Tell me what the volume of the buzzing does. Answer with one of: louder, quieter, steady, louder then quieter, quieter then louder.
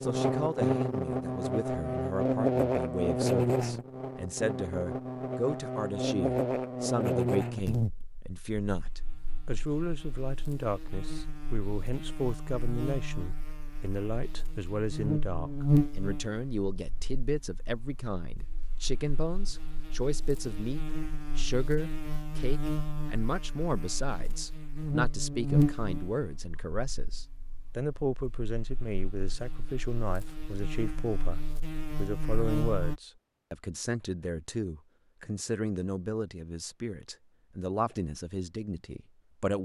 quieter.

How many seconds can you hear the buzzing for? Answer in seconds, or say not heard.
33 s.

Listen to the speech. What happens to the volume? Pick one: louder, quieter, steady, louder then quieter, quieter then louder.
steady.